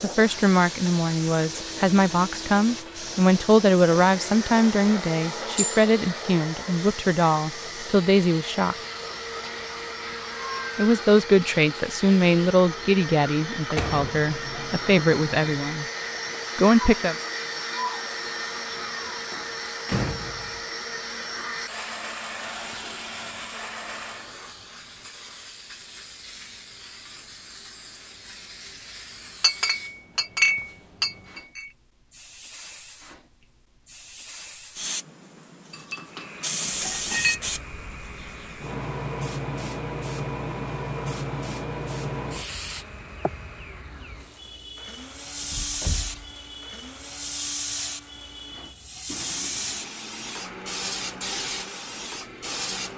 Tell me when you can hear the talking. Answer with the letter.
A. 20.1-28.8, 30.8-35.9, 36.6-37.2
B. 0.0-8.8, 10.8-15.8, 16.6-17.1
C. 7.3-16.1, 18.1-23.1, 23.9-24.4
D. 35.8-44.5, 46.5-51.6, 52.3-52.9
B.